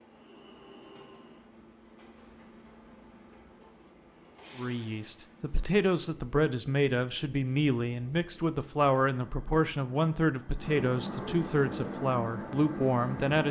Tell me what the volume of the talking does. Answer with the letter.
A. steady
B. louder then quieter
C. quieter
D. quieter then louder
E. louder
A.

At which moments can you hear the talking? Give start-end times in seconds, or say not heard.
4.5-13.4.